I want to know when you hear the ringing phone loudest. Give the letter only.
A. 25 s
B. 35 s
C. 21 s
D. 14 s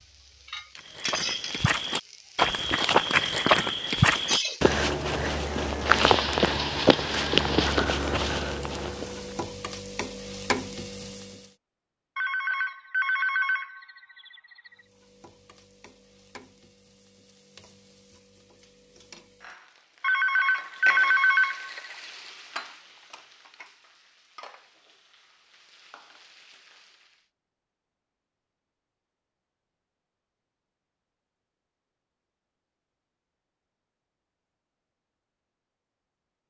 C.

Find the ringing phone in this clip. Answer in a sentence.
You can hear the ringing phone from 12.2 to 14.7 s and from 20.0 to 21.9 s.